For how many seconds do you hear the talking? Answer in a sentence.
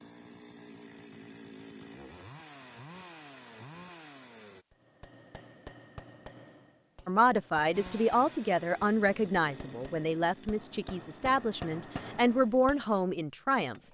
The talking can be heard for 7 seconds in total.